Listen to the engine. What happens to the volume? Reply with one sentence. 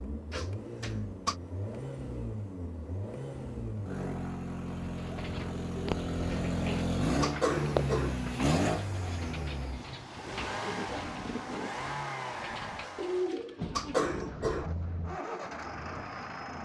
The loudness of the engine goes up, then down.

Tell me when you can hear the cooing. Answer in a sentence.
You can hear the cooing from 4.8 to 14.1 s.